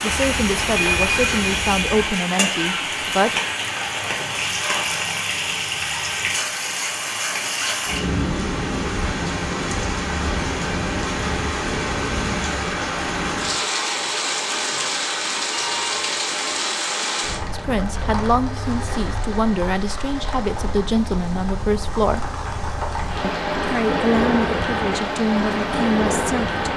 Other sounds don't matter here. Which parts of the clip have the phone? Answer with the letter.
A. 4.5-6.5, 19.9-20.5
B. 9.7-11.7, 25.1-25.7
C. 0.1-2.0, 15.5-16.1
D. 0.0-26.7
C.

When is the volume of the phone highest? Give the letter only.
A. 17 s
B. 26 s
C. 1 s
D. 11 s
C.